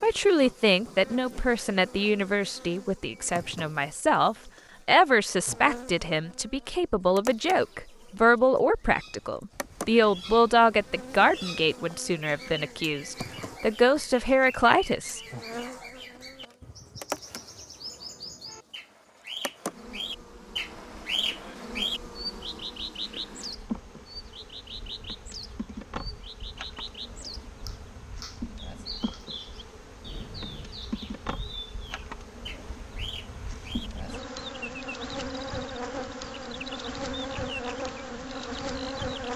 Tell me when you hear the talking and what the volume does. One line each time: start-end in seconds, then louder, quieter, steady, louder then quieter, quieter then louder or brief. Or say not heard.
0.0-15.2 steady.